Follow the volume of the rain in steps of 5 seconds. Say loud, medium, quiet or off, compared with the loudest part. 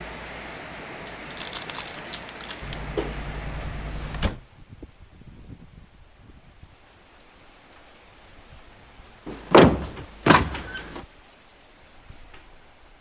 loud, quiet, quiet.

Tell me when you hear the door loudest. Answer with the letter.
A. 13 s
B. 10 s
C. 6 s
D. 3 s
B.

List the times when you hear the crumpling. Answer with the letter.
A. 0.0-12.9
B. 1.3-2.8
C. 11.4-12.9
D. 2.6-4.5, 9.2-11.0
B.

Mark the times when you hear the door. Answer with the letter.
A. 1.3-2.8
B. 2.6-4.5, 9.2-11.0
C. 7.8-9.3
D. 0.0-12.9
B.